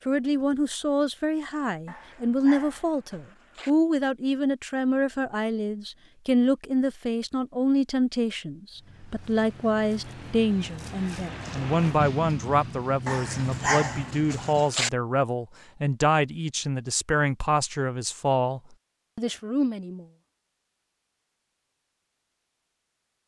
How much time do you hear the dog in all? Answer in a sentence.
You can hear the dog for 4 seconds altogether.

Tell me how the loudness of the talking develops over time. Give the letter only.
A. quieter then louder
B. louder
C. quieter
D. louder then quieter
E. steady
E.